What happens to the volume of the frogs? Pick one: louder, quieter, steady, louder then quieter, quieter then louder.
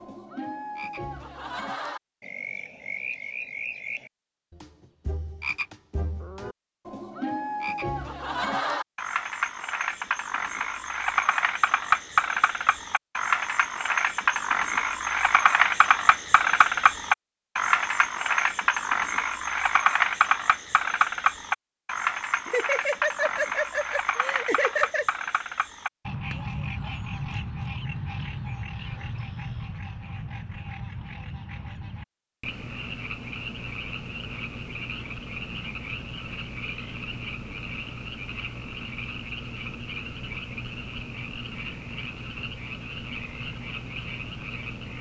louder then quieter.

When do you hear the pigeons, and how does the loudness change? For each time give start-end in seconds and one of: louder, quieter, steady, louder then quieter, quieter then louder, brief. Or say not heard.
not heard.